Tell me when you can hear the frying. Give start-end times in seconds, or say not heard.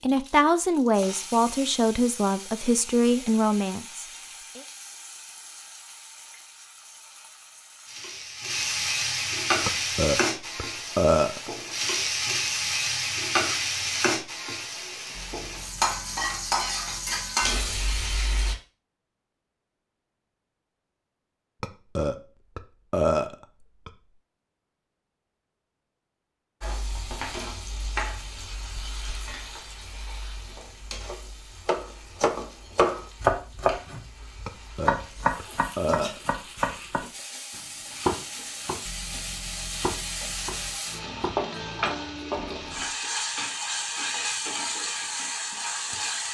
0.0-18.6, 26.6-46.2.